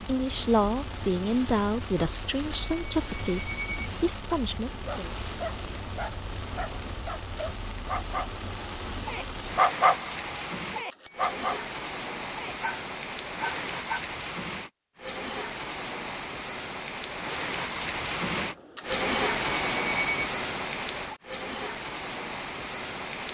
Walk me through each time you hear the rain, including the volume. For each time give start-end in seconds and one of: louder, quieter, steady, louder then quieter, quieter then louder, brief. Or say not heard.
0.0-23.2 louder.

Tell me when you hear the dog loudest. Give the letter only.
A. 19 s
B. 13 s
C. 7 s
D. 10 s
D.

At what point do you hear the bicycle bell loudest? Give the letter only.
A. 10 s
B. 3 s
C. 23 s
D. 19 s
D.